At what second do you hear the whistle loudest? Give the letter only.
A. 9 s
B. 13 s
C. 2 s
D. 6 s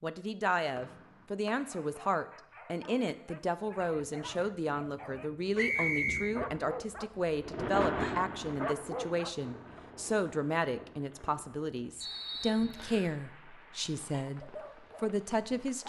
D.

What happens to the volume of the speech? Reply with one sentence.
The loudness of the speech stays about the same.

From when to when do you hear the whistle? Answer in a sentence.
The whistle can be heard from 0.8 to 2.0 s, from 5.5 to 6.3 s and from 12.0 to 13.1 s.